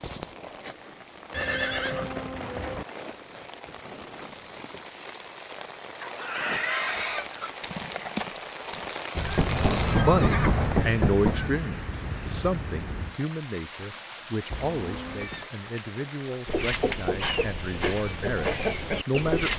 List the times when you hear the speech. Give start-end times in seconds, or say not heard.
10.1-19.5.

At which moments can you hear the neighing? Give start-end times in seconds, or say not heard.
1.3-2.9, 9.5-10.8, 14.5-15.4.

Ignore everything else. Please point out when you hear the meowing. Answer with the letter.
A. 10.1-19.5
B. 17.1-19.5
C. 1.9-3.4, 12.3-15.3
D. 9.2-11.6
D.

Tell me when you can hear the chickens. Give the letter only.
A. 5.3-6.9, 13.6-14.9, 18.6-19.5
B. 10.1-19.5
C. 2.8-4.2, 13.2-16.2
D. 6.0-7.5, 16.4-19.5
D.